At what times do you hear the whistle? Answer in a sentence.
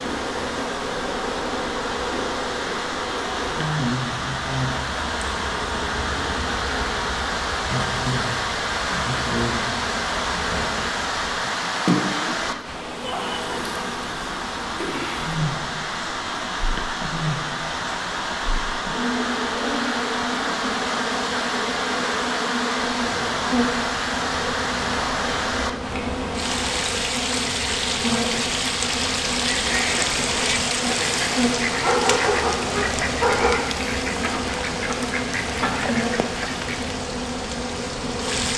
You can't hear the whistle here.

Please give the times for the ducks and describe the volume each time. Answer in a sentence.
The ducks can be heard from 29.6 to 37.0 s, at a steady volume.